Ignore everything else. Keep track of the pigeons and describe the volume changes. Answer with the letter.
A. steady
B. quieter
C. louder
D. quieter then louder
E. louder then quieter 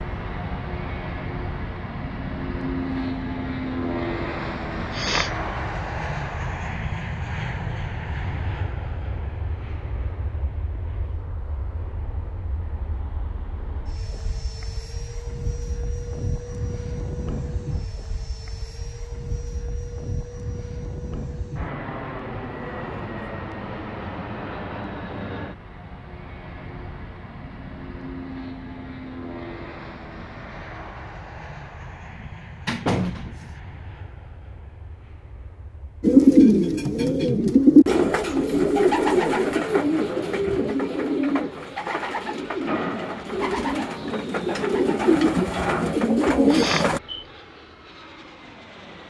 D.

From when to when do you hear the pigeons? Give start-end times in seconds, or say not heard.
36.0-47.0.